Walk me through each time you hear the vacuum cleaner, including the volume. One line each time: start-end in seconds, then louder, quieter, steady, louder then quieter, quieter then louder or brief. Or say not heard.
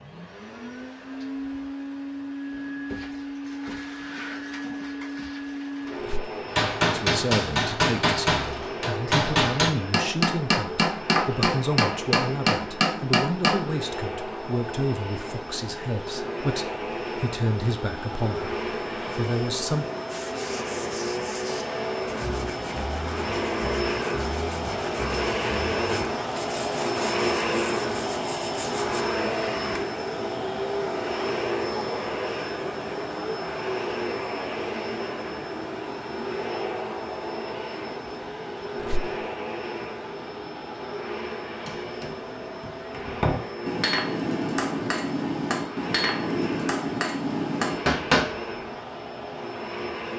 0.0-50.1 louder then quieter.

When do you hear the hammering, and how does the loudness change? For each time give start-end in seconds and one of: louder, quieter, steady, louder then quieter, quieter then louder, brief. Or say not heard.
6.5-13.7 steady
41.5-48.4 louder.